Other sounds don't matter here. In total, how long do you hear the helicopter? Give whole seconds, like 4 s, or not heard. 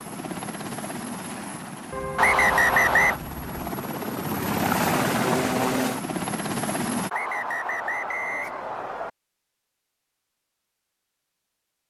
7 s.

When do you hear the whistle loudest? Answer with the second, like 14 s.
3 s.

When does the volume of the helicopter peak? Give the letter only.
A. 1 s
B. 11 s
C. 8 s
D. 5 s
D.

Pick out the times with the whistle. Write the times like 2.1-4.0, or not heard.
2.1-3.2, 7.1-9.1.